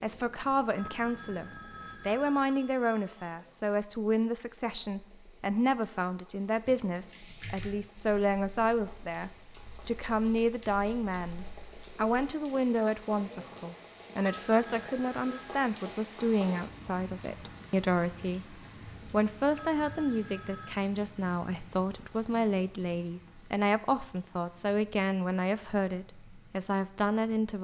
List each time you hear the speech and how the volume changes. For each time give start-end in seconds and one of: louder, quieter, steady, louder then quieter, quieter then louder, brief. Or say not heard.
0.0-27.5 steady.